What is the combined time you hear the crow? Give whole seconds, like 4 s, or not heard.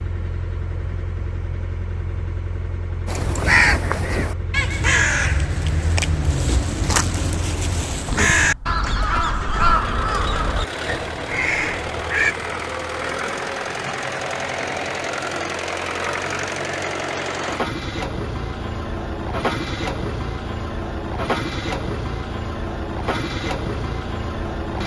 9 s.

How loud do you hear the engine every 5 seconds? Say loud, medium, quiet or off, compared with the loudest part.
medium, medium, loud, loud, loud.